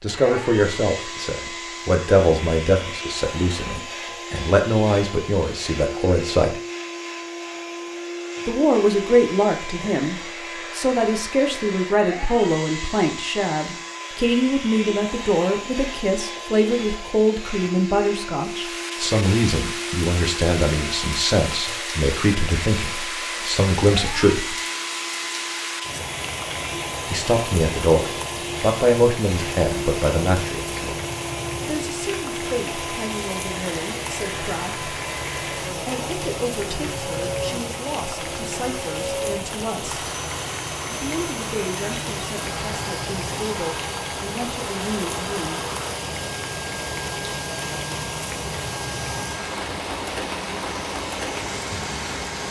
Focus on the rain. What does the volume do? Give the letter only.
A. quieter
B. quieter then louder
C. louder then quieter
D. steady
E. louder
D.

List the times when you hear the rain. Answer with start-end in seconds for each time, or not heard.
18.4-52.4.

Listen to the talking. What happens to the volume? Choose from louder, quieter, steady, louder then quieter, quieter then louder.
quieter.